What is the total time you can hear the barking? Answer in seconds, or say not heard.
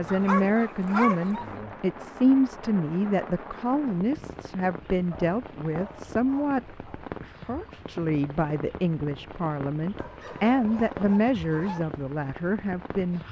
5 s.